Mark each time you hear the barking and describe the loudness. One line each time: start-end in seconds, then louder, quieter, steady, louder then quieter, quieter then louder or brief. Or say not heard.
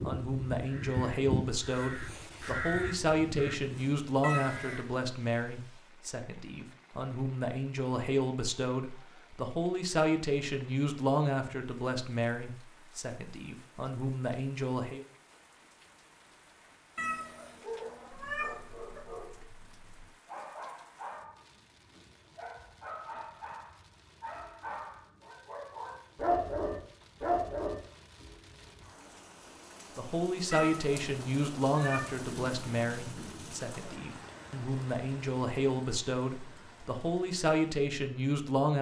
17.6-27.9 louder.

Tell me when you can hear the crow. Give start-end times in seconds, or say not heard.
0.0-5.0.